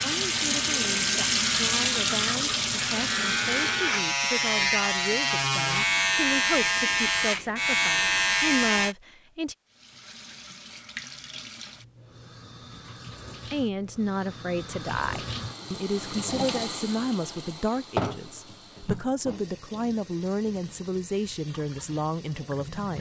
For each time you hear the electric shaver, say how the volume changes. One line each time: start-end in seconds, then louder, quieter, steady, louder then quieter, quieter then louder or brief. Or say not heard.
0.0-8.9 louder.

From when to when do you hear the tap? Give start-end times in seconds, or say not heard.
0.0-4.0, 9.7-22.9.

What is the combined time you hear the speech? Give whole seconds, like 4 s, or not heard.
19 s.